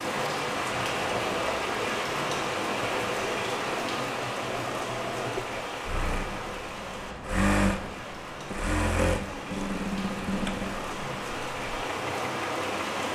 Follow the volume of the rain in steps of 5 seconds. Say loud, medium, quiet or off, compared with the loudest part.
loud, medium, loud.